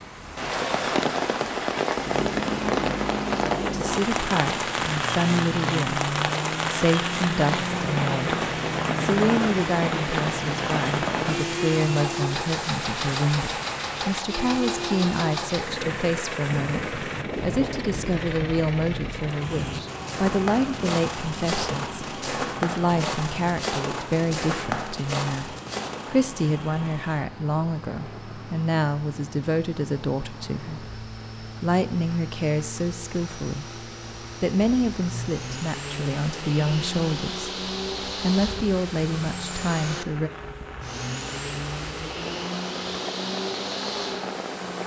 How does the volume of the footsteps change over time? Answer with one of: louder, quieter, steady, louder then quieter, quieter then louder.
steady.